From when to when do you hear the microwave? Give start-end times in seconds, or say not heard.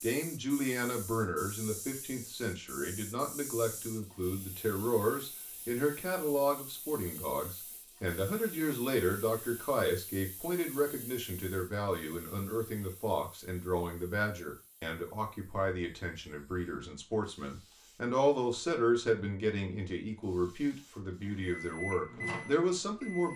21.2-23.3.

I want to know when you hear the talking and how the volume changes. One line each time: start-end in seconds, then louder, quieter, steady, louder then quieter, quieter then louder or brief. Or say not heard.
0.0-23.3 steady.